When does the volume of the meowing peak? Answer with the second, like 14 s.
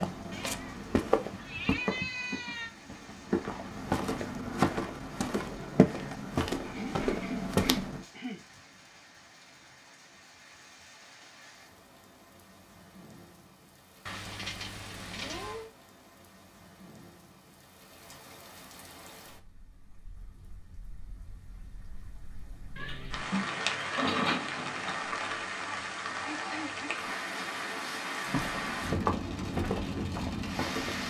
24 s.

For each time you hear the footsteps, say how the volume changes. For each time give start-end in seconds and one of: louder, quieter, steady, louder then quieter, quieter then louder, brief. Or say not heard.
0.0-8.1 quieter then louder
28.2-31.0 brief.